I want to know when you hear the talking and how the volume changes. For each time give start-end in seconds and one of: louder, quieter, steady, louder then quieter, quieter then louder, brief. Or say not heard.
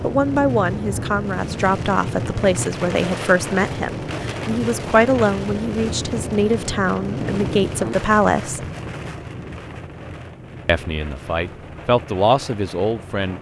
0.0-8.7 steady
10.7-13.3 brief.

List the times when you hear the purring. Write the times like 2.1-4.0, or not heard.
not heard.